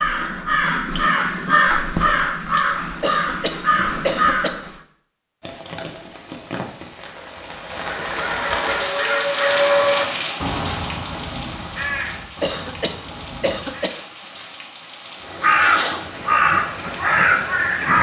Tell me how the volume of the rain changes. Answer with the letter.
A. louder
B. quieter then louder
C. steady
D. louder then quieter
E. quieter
D.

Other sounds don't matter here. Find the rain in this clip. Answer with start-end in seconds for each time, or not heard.
5.4-17.9.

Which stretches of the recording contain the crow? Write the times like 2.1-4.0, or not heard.
0.0-4.8, 7.8-13.9, 15.2-17.9.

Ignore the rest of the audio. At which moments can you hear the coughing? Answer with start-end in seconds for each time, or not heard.
3.0-4.7, 12.4-14.1.